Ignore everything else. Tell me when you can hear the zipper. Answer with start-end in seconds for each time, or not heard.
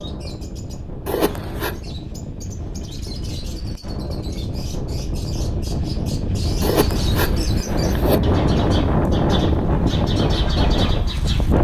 1.1-1.8, 6.6-8.2.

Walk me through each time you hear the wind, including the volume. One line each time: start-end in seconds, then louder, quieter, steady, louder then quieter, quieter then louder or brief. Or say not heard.
0.0-11.5 louder.